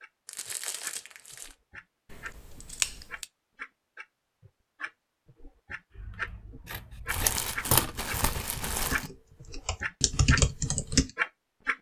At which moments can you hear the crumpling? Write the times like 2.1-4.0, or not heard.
0.2-1.6, 7.0-9.1.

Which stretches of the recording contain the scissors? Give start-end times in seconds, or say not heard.
2.1-3.2, 6.7-8.0.